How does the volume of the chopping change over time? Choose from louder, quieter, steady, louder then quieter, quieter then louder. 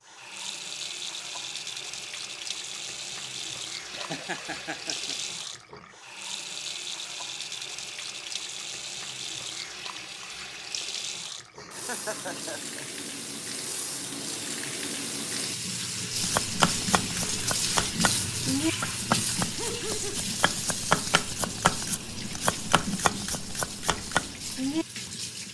steady.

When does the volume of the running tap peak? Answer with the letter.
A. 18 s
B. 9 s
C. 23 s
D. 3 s
A.